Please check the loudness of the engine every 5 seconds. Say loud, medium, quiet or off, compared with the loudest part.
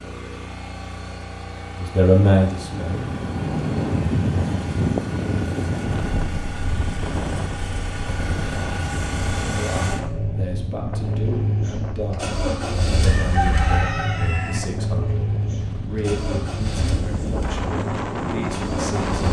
medium, loud, loud, loud.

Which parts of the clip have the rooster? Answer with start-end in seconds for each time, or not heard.
13.0-14.6.